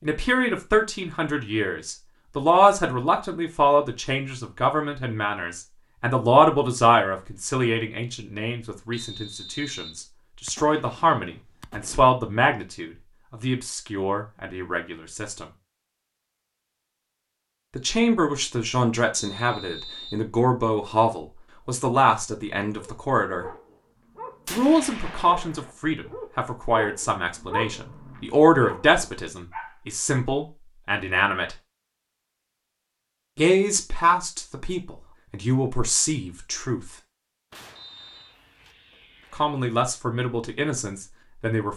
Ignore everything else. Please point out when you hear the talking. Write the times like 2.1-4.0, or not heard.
0.0-15.4, 17.8-23.4, 24.5-31.6, 33.4-36.9, 39.3-41.7.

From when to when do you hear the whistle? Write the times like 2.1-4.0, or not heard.
8.9-10.1, 19.1-20.2, 37.8-38.4.